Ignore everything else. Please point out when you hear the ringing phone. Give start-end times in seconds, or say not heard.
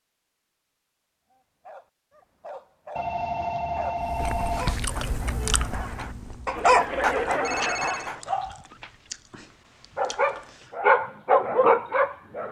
3.0-4.7, 7.2-8.1.